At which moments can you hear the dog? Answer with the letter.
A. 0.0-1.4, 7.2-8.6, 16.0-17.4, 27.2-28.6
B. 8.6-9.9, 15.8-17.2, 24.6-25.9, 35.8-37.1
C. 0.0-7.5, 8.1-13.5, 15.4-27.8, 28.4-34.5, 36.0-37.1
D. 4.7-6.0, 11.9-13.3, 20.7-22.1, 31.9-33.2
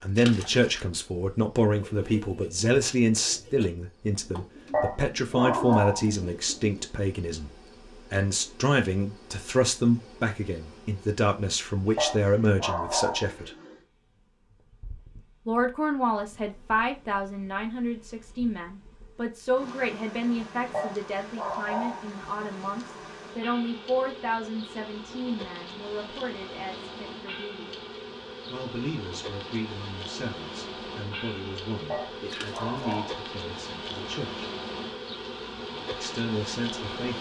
D.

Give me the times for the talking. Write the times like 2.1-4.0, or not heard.
0.0-7.5, 8.1-13.5, 15.4-27.8, 28.4-34.5, 36.0-37.1.